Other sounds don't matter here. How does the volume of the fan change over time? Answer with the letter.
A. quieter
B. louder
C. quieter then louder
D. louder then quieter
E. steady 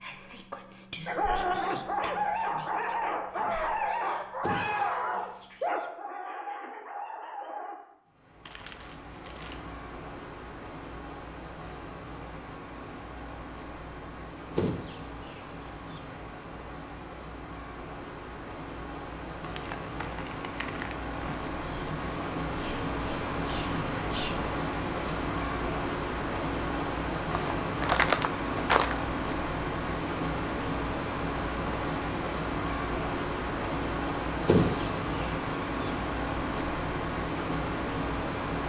B.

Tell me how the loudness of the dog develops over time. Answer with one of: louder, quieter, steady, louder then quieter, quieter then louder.
quieter.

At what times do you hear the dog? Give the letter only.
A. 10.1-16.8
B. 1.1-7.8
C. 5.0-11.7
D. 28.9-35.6
B.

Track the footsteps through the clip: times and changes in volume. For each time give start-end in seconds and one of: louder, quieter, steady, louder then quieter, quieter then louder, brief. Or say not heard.
not heard.